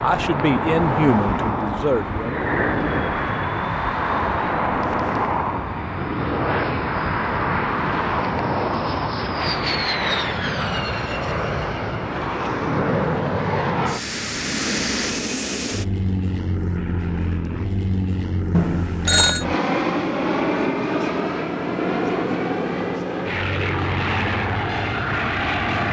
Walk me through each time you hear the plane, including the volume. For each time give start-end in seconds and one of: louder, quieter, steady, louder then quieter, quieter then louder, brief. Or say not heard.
0.0-25.8 steady.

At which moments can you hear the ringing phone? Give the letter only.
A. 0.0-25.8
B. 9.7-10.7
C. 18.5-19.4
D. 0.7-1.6
C.